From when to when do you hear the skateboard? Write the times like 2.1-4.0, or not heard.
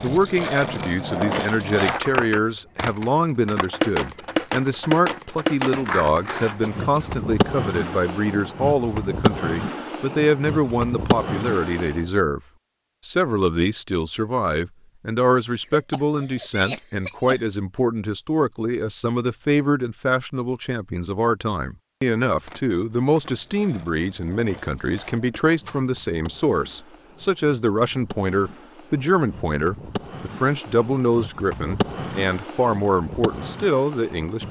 0.0-12.1, 22.4-34.4.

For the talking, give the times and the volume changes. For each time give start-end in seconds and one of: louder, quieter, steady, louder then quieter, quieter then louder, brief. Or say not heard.
0.0-12.4 steady
13.0-34.4 steady.